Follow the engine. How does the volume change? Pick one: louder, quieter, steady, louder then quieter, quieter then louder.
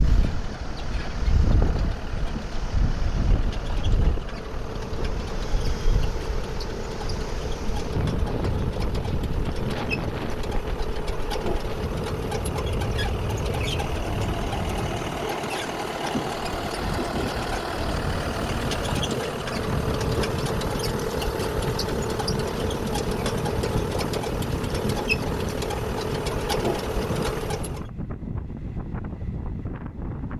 louder.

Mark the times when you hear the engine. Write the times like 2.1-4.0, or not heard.
0.0-27.9.